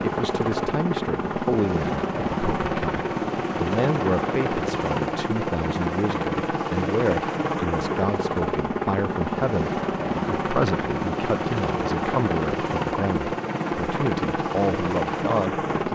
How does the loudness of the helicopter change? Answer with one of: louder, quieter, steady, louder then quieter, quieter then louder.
steady.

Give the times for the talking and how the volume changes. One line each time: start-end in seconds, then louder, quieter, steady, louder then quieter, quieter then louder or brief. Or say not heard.
0.0-15.7 steady.